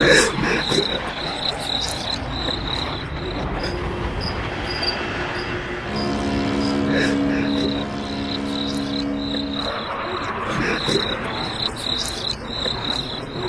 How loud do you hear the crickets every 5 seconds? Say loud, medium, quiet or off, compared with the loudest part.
loud, medium, loud.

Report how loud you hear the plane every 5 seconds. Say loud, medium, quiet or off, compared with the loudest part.
medium, loud, medium.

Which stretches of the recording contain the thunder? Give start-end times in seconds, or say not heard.
not heard.